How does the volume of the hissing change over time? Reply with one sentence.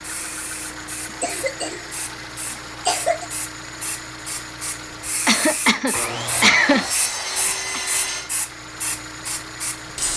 The volume of the hissing goes up.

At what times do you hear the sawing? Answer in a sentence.
The sawing can be heard from 5.9 to 8.3 s.